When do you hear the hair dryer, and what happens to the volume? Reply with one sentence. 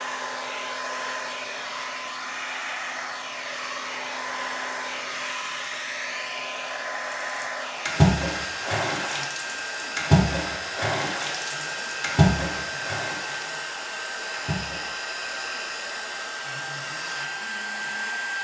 You can hear the hair dryer from 0.0 to 18.3 s, at a steady volume.